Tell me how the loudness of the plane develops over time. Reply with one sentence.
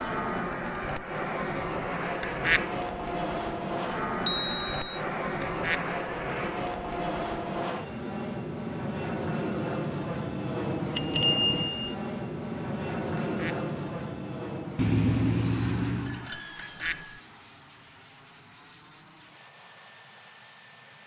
The volume of the plane goes down.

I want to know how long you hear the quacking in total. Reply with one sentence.
You can hear the quacking for 2 seconds altogether.